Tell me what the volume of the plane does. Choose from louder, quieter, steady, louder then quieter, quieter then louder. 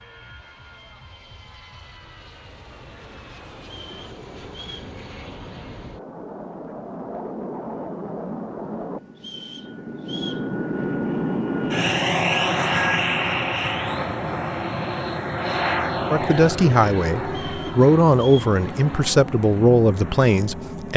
louder then quieter.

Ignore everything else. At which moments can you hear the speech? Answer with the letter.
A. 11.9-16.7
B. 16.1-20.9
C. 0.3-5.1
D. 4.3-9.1
B.